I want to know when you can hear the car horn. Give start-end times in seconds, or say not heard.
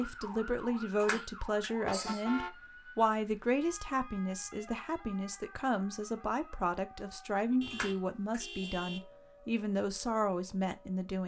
1.9-2.5, 7.6-9.1.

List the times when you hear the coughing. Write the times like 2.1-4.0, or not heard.
1.0-2.2, 7.7-8.7.